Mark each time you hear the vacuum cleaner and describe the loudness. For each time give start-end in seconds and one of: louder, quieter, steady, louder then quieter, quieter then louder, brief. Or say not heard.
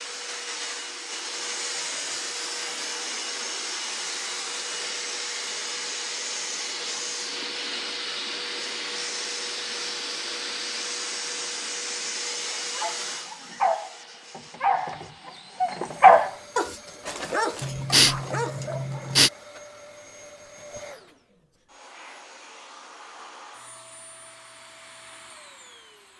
0.0-26.1 quieter.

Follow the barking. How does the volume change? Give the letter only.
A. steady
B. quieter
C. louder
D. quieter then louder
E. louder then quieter
E.